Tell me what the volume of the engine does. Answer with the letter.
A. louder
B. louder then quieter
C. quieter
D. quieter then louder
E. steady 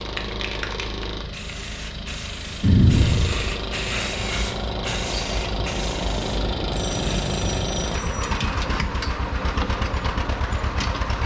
A.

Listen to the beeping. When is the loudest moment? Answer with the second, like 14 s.
3 s.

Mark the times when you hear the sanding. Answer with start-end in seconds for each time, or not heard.
not heard.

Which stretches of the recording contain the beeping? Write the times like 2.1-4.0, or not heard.
2.6-3.5, 6.7-8.2.